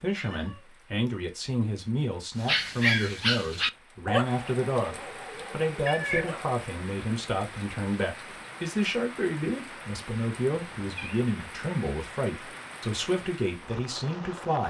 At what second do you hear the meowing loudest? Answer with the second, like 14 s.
6 s.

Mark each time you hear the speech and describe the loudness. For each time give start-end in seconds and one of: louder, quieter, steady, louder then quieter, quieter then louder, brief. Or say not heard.
0.0-14.6 steady.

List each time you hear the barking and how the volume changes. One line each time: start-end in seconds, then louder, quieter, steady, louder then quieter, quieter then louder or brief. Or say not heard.
2.4-6.6 quieter.